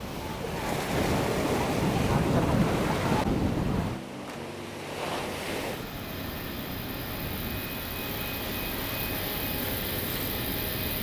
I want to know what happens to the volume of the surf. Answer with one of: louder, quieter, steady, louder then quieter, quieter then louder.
quieter.